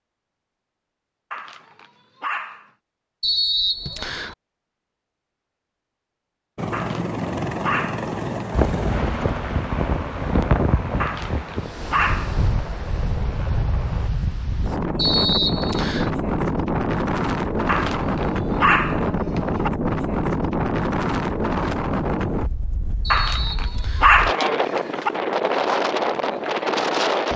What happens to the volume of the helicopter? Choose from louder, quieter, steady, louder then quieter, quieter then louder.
quieter.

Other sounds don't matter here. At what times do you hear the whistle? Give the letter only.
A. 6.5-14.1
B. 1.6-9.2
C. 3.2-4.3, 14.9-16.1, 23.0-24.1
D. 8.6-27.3
C.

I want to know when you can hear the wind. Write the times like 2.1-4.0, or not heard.
8.6-27.3.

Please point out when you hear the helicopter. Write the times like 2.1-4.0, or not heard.
6.5-14.1.